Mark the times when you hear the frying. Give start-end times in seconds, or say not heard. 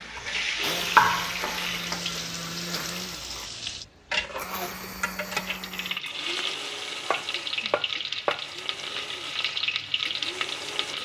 0.0-11.0.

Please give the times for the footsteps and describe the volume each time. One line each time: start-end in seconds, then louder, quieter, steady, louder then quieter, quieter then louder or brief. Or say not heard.
not heard.